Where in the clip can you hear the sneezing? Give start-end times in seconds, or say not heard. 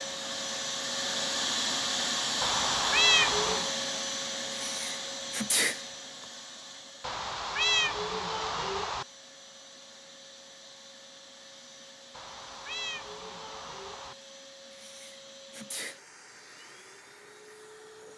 4.7-5.8, 14.7-16.0.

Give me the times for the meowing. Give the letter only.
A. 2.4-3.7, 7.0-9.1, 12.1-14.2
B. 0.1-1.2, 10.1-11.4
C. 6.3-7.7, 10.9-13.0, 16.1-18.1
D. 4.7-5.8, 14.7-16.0
A.